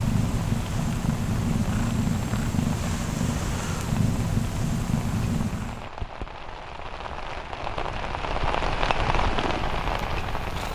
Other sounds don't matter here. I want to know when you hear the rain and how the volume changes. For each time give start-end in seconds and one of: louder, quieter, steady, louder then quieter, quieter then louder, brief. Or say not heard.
0.0-10.6 louder.